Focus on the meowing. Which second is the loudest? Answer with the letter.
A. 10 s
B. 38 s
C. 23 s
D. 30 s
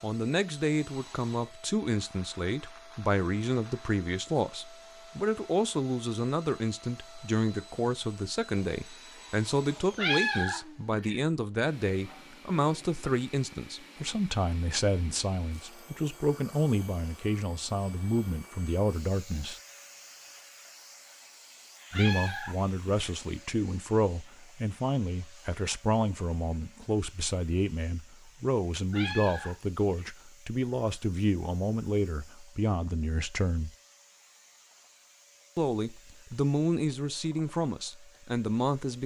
A.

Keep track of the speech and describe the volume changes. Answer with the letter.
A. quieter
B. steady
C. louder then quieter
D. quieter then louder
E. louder
B.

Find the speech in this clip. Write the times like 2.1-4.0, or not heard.
0.0-19.6, 21.9-33.7, 35.5-39.0.